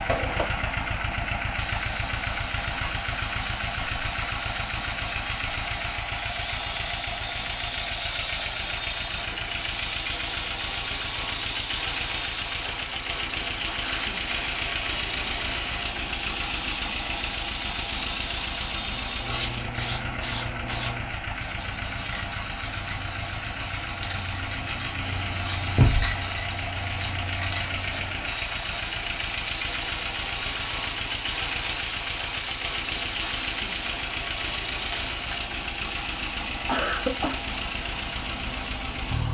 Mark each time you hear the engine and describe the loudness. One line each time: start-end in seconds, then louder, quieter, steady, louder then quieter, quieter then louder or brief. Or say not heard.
0.0-39.2 steady.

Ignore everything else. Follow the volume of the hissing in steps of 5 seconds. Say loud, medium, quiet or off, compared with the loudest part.
loud, loud, loud, loud, loud, loud, loud, medium.